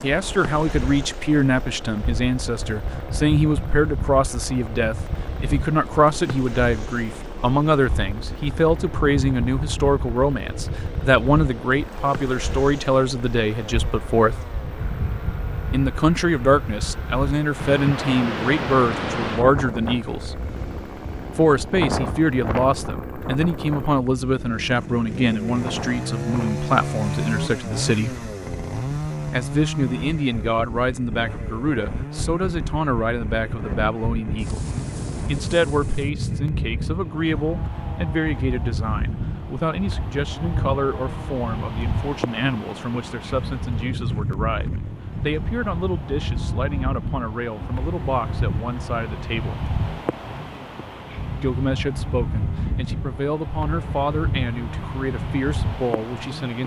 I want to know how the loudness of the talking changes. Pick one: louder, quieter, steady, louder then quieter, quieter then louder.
quieter.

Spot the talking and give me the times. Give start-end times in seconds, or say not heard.
0.0-14.4, 15.7-20.4, 21.4-28.1, 29.3-34.6, 35.2-49.6, 51.4-56.6.